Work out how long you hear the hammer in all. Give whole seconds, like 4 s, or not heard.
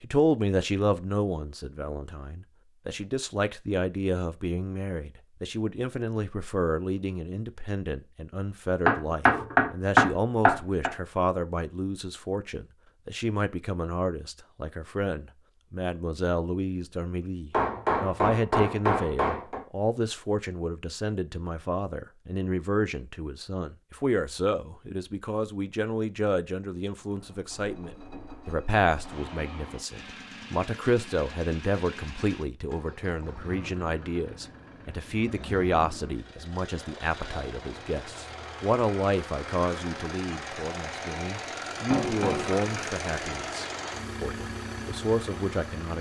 5 s.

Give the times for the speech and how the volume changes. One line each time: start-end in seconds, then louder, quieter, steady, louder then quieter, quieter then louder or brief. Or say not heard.
0.0-45.9 steady.